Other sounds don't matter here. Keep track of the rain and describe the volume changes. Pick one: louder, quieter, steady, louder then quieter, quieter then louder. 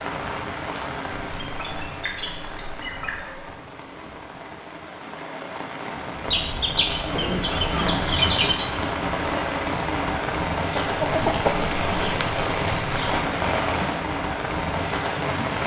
louder.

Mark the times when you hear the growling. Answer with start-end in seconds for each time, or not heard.
7.1-8.1.